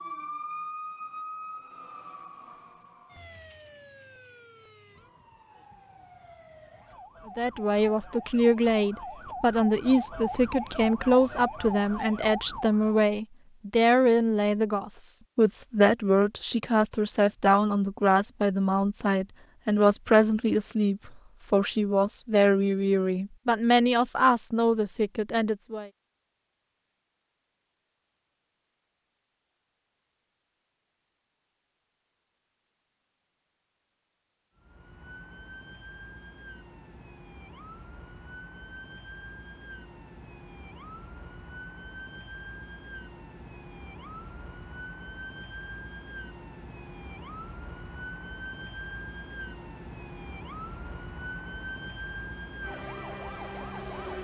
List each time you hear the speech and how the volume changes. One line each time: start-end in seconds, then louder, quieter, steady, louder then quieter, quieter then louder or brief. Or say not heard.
7.3-25.9 steady.